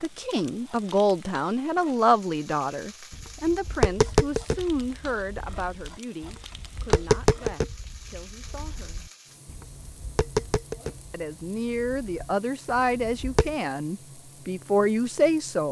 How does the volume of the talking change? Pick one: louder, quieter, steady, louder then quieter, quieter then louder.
quieter then louder.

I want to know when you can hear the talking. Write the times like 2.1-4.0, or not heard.
0.0-9.1, 11.1-15.6.